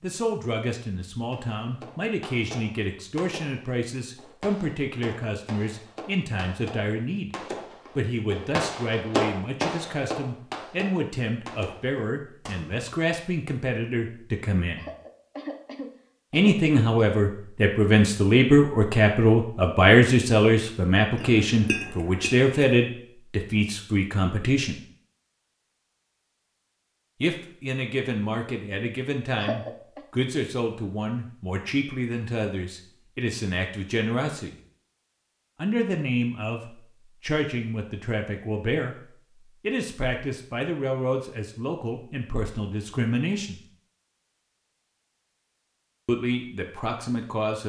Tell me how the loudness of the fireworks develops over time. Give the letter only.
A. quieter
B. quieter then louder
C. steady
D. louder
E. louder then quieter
E.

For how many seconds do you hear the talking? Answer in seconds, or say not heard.
40 s.